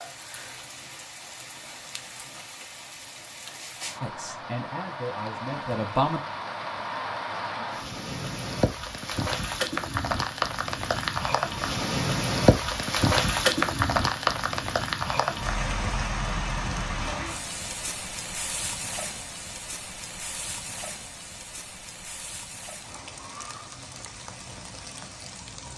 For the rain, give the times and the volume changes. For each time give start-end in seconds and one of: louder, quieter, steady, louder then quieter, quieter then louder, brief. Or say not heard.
0.0-25.7 louder then quieter.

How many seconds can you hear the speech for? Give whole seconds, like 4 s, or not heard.
2 s.